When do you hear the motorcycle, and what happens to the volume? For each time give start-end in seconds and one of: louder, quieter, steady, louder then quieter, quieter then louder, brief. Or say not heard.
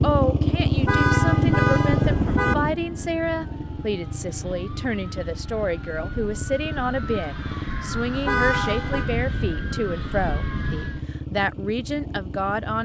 0.0-12.8 quieter.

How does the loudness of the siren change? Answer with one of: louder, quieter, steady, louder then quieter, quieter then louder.
louder.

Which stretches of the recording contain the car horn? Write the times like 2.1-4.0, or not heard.
0.8-2.5, 8.2-9.1.